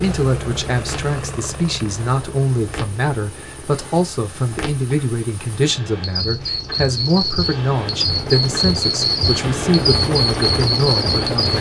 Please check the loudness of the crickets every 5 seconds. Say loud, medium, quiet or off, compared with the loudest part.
quiet, loud, loud.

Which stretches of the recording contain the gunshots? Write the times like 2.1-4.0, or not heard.
not heard.